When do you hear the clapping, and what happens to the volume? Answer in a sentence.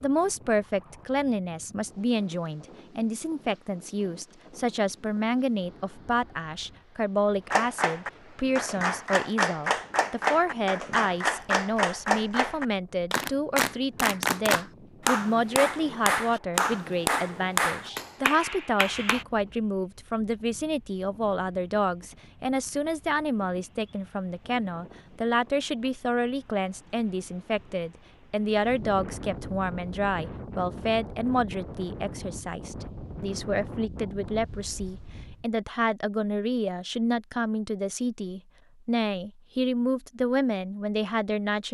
The clapping can be heard from 7.5 to 19.2 s, at a steady volume.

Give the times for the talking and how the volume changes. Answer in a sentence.
You can hear the talking from 0.0 to 41.6 s, at a steady volume.